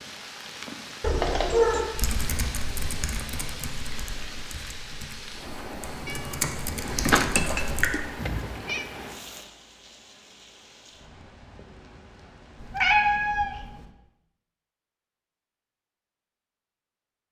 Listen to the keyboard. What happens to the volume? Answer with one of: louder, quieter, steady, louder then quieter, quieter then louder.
quieter then louder.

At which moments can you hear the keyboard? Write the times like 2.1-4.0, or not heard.
1.9-8.4.